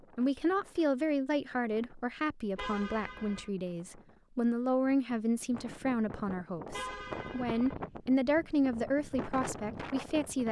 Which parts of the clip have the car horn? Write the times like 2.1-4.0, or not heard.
2.5-3.5, 6.7-7.8.